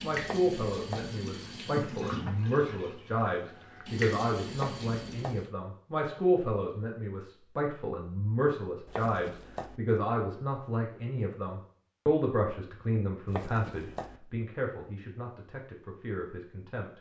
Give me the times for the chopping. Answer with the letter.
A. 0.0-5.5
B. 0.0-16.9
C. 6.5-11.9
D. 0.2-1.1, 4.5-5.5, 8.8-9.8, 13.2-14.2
D.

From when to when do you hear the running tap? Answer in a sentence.
You can hear the running tap from 0.0 to 5.5 s.